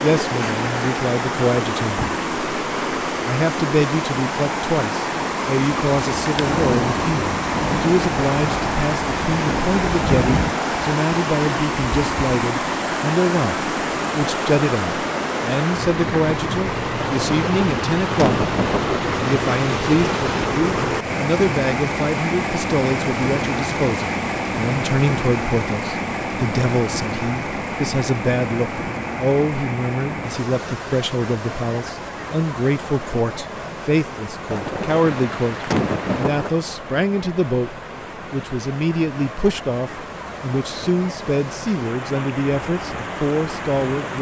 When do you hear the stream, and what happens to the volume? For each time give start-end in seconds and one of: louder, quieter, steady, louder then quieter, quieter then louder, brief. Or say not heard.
0.0-44.1 quieter.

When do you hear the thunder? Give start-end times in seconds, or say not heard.
6.3-10.6, 16.9-19.0, 34.5-36.5.